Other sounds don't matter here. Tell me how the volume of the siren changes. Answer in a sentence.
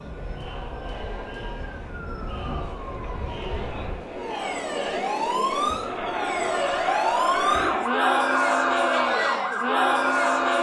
The loudness of the siren goes up.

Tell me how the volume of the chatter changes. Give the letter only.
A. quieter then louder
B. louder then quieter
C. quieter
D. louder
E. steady
D.